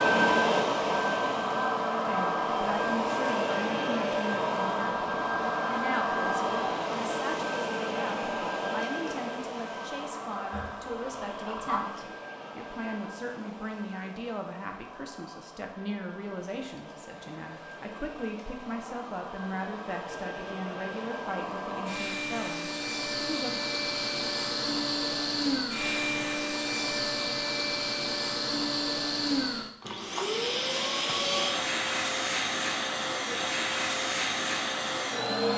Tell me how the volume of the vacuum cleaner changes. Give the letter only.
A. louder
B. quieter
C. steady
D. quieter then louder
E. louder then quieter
D.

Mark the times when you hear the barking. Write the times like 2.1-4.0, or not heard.
10.5-12.2.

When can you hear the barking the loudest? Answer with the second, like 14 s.
12 s.